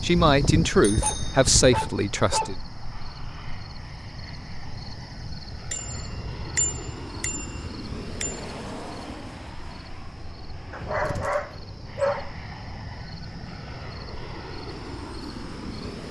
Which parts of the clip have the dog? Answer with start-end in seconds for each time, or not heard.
1.0-2.6, 10.7-12.3.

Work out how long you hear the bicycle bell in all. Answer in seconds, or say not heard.
5 s.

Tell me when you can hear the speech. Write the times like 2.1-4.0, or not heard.
0.0-2.5.